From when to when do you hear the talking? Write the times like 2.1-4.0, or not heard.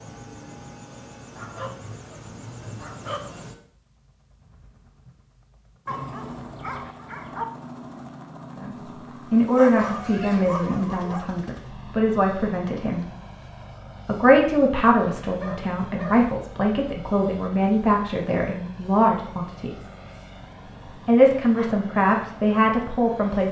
8.6-13.1, 14.1-19.9, 21.1-23.4.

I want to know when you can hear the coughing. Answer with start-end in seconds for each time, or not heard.
not heard.